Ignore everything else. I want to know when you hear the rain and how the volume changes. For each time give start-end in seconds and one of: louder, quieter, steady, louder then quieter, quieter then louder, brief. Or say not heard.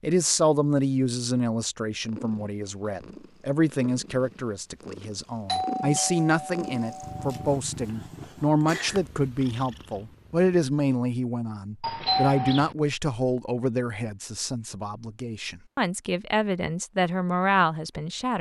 not heard.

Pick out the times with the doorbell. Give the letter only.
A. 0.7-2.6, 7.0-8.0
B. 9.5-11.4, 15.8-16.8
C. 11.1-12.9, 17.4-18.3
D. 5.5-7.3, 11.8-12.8
D.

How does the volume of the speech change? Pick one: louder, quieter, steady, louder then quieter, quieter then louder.
steady.